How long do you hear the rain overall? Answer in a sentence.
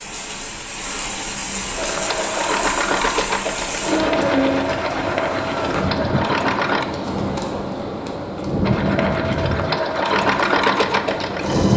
The rain can be heard for 12 seconds in total.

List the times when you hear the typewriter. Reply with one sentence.
The typewriter can't be heard in this clip.